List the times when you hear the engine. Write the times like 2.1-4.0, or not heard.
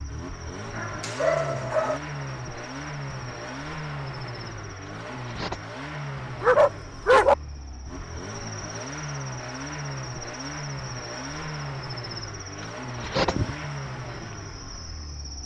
0.0-15.4.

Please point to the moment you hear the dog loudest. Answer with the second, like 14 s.
7 s.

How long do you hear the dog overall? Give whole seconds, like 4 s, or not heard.
3 s.